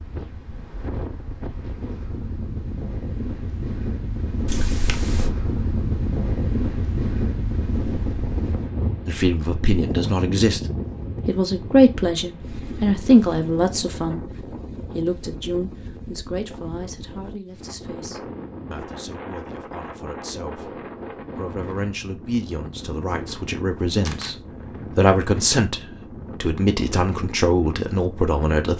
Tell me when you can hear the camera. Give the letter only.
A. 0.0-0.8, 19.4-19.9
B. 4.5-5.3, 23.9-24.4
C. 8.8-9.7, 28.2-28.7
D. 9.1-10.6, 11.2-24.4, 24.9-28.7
B.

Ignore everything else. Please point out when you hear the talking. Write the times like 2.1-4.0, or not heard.
9.1-10.6, 11.2-24.4, 24.9-28.7.